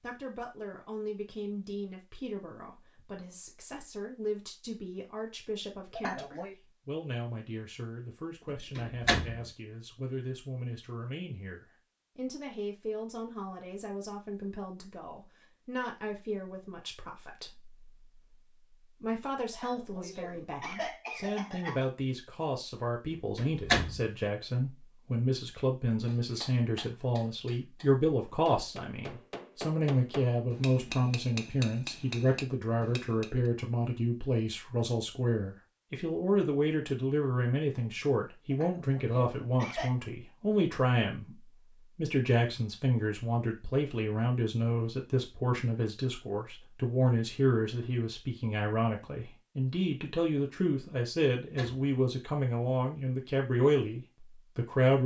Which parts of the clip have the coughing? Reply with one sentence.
The coughing can be heard from 6.0 to 6.5 s, from 19.5 to 21.9 s and from 38.5 to 40.0 s.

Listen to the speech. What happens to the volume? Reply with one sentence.
The loudness of the speech goes up.